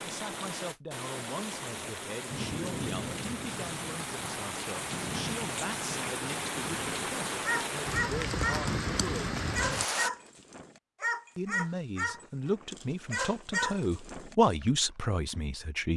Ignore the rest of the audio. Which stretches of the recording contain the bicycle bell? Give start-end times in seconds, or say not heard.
not heard.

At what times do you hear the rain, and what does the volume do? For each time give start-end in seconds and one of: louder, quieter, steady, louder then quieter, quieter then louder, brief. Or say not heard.
0.0-10.1 louder.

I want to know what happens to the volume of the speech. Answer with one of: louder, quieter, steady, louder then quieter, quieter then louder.
louder.